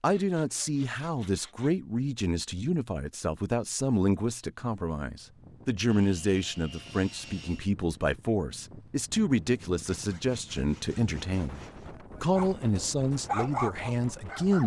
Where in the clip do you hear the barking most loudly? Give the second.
13 s.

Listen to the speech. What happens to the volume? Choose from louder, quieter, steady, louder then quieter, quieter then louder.
steady.